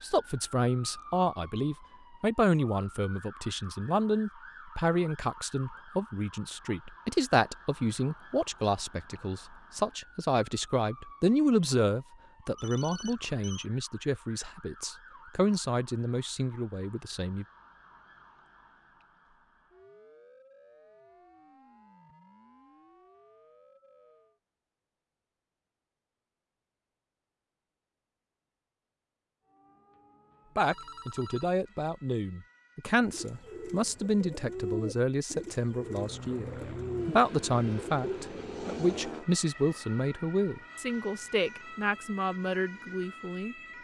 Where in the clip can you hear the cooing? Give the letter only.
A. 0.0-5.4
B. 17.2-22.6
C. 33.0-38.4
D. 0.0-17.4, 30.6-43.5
C.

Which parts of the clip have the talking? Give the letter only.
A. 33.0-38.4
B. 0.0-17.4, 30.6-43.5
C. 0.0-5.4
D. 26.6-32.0
B.